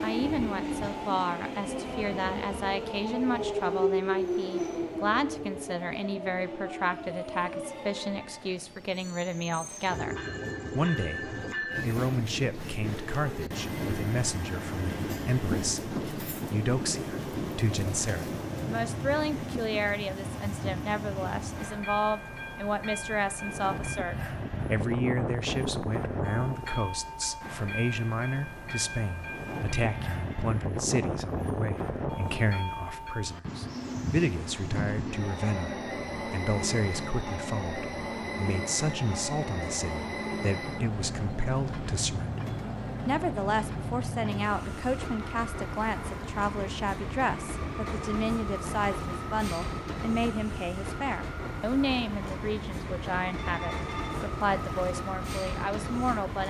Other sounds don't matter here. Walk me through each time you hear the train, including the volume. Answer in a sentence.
The train can be heard from 0.0 to 56.4 s, at a steady volume.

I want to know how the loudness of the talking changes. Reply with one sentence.
The volume of the talking stays about the same.